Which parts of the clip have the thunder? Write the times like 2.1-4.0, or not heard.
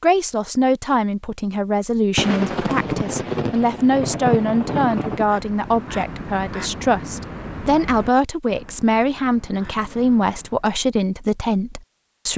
2.1-5.3.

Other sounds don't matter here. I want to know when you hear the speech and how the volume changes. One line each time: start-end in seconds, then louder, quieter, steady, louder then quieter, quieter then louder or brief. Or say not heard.
0.0-12.3 steady.